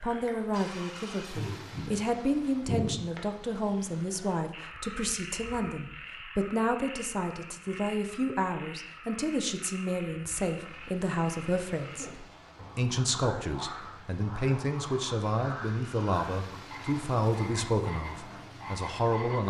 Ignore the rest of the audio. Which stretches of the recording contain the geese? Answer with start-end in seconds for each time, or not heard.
not heard.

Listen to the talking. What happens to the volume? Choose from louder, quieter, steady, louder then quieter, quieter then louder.
steady.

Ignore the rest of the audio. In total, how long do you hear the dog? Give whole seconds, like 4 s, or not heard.
not heard.